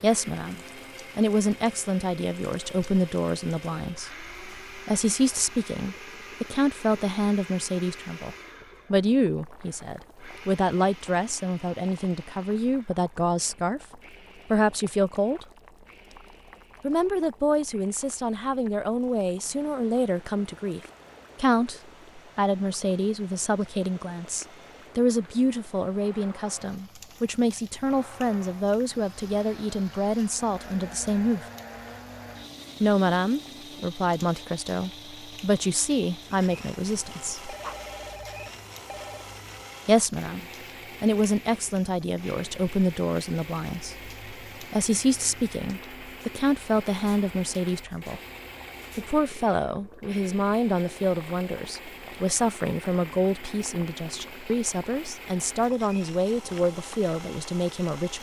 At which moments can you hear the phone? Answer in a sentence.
The phone can be heard from 37.5 to 39.2 s.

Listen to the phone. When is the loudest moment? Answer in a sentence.
The volume of the phone peaks at 38 seconds.